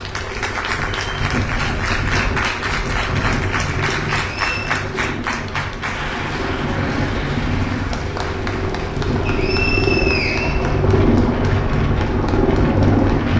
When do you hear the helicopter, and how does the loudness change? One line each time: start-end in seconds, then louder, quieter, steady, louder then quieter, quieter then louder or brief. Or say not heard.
0.0-13.3 louder.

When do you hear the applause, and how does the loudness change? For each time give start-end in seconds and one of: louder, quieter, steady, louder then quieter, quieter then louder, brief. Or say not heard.
0.0-13.3 quieter.